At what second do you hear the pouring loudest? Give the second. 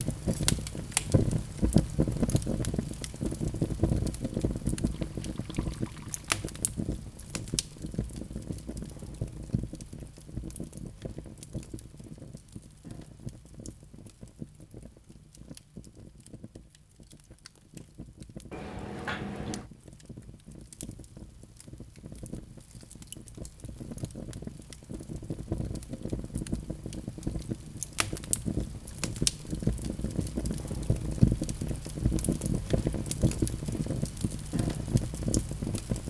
19 s.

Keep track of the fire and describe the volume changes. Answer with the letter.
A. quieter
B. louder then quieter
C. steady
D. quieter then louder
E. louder
D.